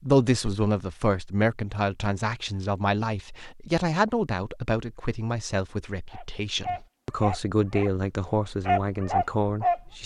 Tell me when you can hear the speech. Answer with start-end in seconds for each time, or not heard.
0.0-10.0.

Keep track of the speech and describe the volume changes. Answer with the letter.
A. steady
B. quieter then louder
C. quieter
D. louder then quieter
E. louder
A.